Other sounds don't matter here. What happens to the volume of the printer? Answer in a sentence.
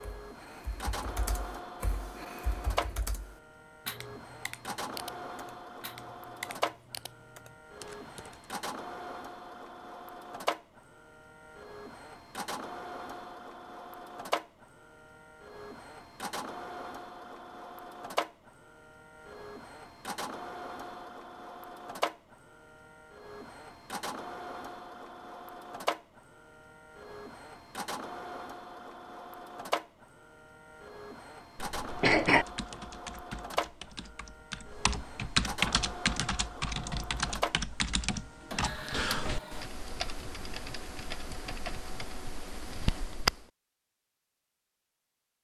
The loudness of the printer stays about the same.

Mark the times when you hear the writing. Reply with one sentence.
You can't hear the writing here.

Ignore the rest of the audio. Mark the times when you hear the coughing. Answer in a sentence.
The coughing can be heard from 31.6 to 32.5 s.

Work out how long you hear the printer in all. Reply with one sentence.
The printer can be heard for 40 seconds in total.